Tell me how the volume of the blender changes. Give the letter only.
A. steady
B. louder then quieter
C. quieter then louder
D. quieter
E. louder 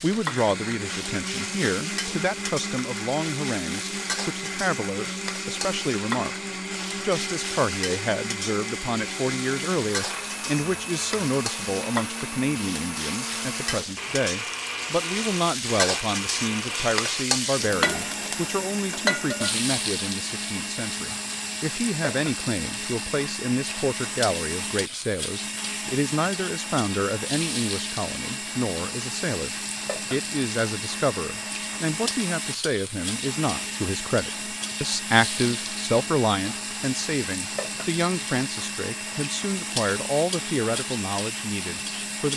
A.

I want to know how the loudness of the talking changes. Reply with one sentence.
The loudness of the talking stays about the same.